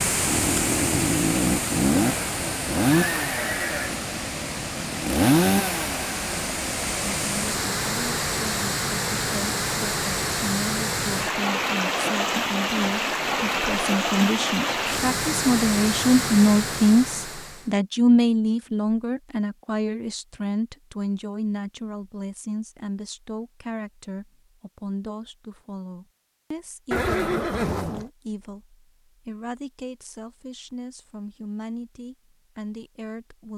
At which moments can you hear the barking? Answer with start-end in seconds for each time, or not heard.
not heard.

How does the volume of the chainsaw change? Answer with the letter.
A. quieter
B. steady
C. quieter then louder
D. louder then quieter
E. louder
C.